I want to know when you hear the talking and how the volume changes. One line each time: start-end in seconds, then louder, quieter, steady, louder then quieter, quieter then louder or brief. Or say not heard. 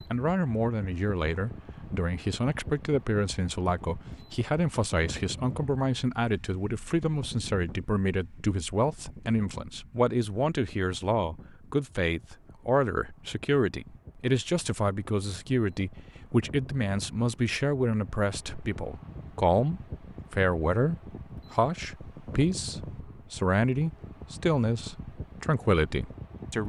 0.1-26.6 steady.